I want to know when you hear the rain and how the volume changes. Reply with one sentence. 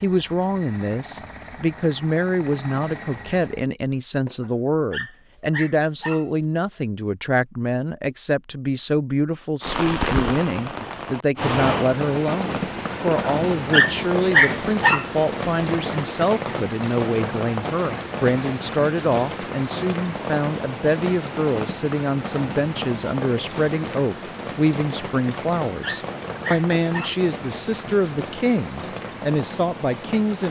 The rain can be heard from 9.6 to 30.4 s, getting quieter.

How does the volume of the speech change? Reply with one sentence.
The volume of the speech stays about the same.